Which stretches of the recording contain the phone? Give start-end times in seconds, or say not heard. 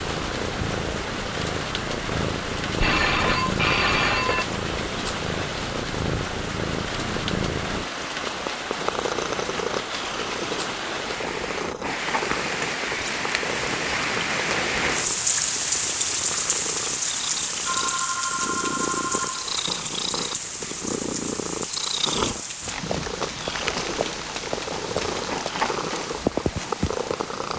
2.8-4.5, 17.6-19.5.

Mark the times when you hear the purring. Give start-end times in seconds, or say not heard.
0.0-27.5.